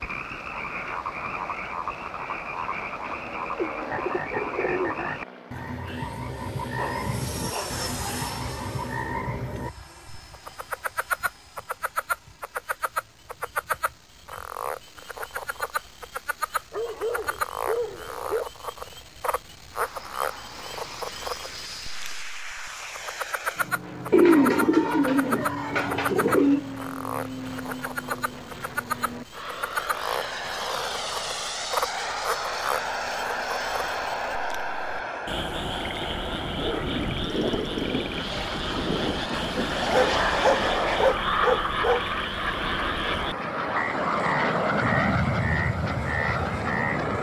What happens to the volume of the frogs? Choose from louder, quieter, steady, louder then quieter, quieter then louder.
steady.